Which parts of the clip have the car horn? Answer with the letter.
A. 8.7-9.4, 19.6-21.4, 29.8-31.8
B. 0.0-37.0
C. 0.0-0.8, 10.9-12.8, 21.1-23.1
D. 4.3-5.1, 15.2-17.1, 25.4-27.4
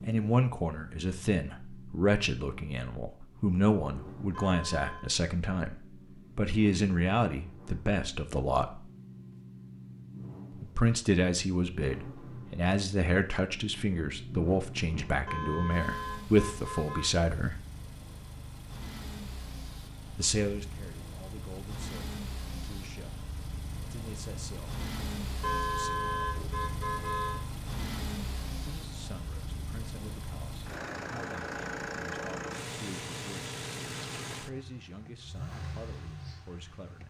D.